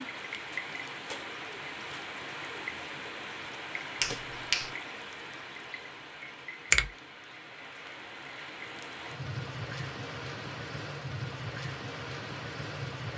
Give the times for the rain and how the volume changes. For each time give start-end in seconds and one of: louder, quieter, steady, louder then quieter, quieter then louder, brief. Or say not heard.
0.0-13.1 quieter then louder.